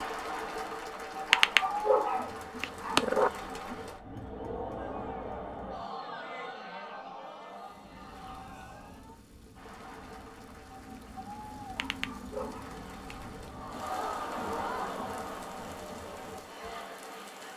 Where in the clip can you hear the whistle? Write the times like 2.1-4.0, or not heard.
not heard.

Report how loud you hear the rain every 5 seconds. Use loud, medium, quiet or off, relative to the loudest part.
off, medium, loud, loud.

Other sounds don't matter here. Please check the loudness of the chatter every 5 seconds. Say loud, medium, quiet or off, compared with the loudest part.
loud, medium, loud, medium.